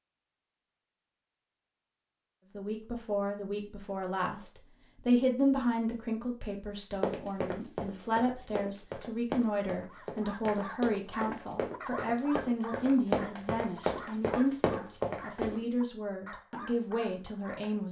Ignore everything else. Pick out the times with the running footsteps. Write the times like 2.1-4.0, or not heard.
7.0-15.6.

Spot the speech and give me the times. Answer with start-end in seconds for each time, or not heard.
2.5-17.8.